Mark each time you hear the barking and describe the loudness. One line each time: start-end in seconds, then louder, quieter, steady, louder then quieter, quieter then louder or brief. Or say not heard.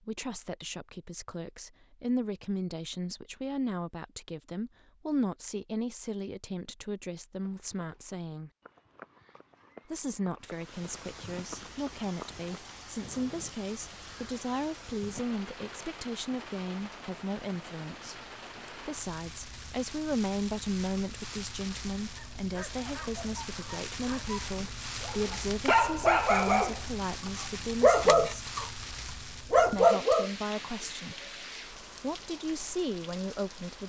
22.1-28.7 louder
29.5-30.3 brief.